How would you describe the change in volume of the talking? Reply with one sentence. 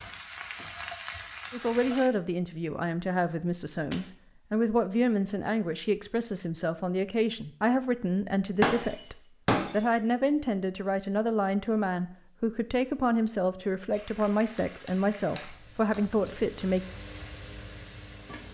The volume of the talking stays about the same.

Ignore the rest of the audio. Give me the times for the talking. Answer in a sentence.
You can hear the talking from 1.5 to 16.8 s.